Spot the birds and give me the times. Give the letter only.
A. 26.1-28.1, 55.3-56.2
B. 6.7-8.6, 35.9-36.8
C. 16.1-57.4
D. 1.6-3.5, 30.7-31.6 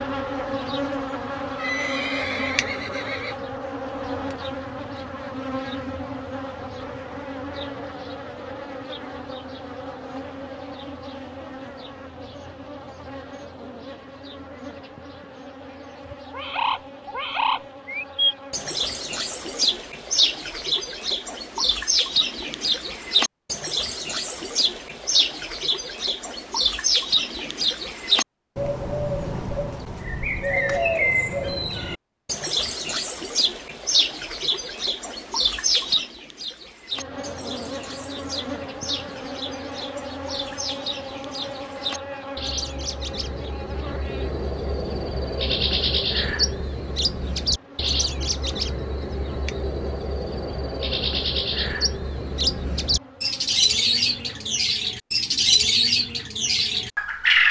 C.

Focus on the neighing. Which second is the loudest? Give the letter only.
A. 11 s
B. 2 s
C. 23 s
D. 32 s
B.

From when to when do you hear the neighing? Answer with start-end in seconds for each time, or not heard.
1.6-3.5, 30.7-31.6.